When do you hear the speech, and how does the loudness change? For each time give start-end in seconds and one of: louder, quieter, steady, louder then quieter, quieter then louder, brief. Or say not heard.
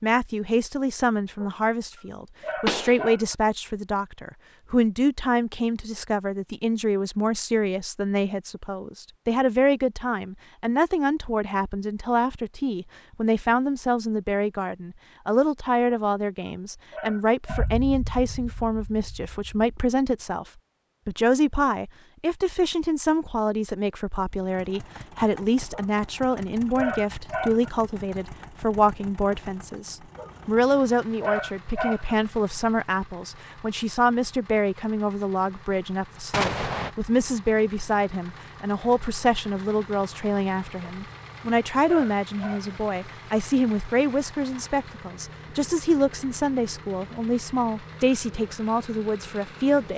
0.0-49.9 steady.